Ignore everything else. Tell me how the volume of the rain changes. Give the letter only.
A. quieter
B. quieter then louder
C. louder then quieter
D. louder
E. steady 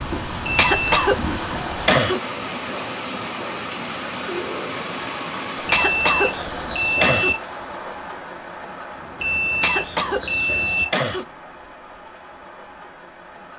A.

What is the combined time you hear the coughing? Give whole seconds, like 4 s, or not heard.
5 s.